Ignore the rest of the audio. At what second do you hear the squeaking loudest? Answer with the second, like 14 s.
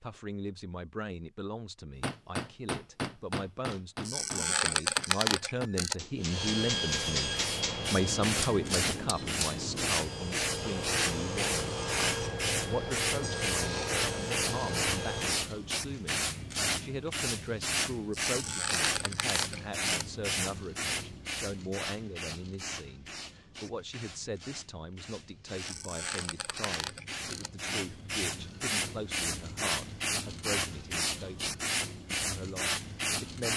5 s.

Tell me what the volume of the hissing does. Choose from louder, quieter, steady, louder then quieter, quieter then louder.
quieter then louder.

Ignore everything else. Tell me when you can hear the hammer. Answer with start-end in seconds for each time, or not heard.
2.0-9.9.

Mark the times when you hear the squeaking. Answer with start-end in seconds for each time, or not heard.
4.0-6.0, 18.2-20.1, 25.6-27.5.